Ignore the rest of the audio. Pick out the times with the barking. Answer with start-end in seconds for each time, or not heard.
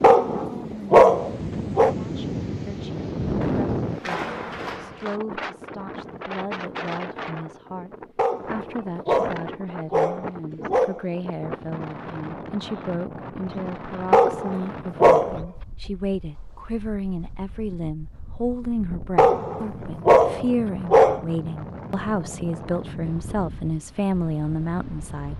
0.0-1.9, 8.2-11.1, 14.1-15.4, 19.1-21.2.